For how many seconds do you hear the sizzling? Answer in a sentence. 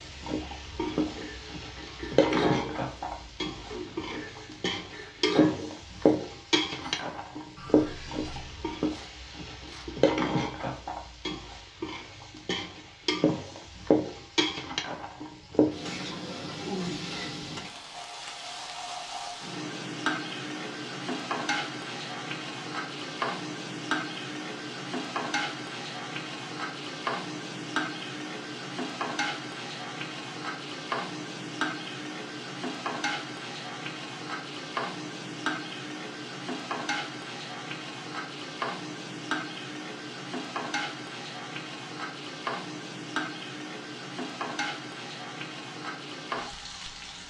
The sizzling can be heard for 47 seconds in total.